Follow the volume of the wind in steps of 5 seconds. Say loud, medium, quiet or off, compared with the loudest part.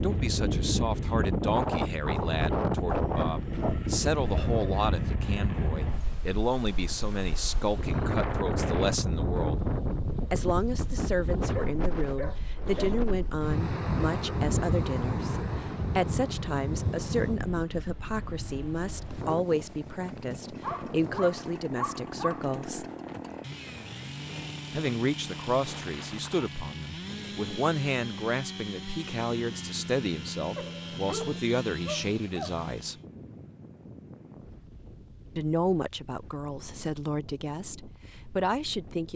loud, loud, loud, medium, quiet, quiet, quiet, quiet.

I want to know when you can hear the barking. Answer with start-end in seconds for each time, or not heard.
2.9-4.8, 11.5-13.0, 20.6-22.6, 30.6-32.5.